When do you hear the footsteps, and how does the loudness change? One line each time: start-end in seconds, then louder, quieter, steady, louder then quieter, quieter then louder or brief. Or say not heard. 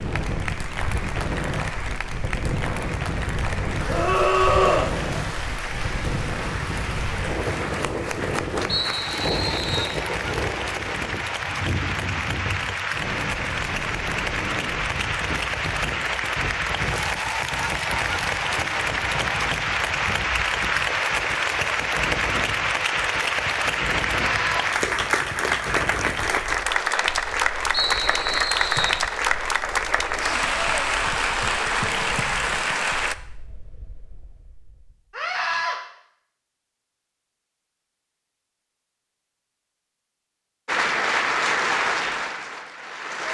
not heard.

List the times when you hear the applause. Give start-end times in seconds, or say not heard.
0.0-33.1, 40.6-43.2.